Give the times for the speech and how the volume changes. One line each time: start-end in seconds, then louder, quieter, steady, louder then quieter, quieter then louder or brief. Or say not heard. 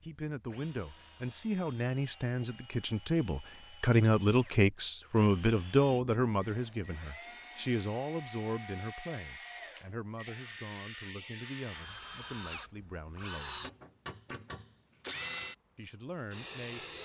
0.0-13.6 louder then quieter
15.8-16.9 brief.